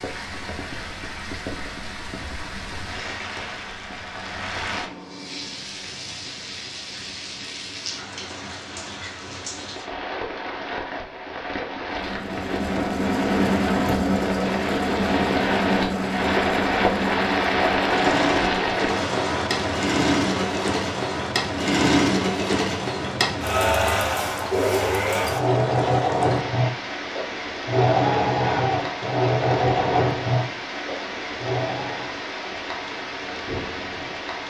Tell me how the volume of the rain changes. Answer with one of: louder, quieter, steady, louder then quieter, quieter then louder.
louder then quieter.